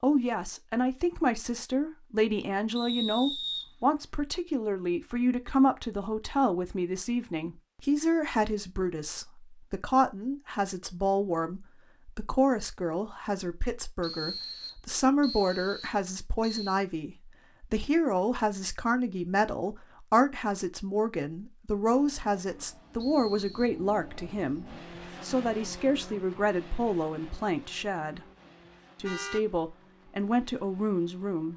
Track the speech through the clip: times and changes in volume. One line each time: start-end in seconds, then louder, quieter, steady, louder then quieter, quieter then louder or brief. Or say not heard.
0.0-28.2 steady
29.0-31.5 brief.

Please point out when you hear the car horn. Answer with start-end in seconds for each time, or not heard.
29.0-29.4.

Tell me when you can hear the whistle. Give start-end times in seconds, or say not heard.
2.8-4.1, 14.0-16.8, 22.9-23.8.